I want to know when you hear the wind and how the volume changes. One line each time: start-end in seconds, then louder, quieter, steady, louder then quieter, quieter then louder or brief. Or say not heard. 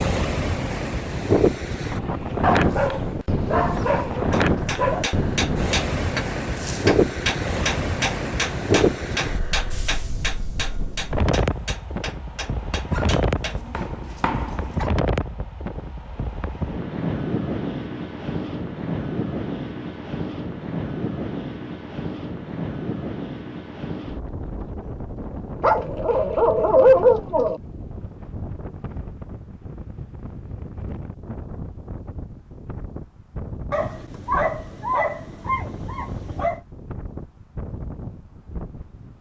0.0-39.1 quieter.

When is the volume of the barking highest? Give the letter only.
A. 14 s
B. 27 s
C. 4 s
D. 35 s
B.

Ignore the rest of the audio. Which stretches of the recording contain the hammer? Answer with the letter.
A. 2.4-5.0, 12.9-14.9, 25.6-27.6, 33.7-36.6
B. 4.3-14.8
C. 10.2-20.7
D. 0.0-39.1
B.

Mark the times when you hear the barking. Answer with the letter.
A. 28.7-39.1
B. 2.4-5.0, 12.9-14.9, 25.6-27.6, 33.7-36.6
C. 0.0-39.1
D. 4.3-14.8
B.